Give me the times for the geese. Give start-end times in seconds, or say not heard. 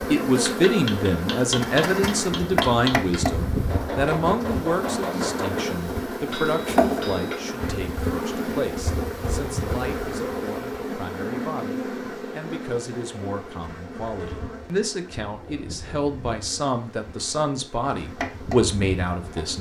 not heard.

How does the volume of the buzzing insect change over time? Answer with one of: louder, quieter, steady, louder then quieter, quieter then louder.
quieter.